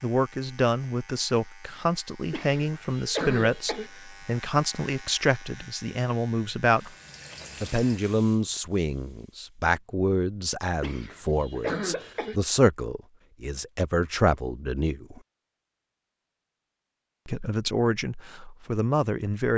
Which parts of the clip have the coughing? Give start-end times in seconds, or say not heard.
2.3-3.9, 10.8-12.4.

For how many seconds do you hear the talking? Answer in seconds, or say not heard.
17 s.